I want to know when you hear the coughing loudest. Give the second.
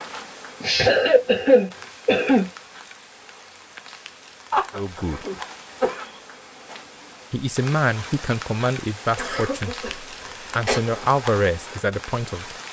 1 s.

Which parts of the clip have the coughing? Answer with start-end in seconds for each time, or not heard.
0.6-2.5, 4.5-6.1, 9.2-10.8.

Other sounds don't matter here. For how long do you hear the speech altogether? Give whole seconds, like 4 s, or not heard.
5 s.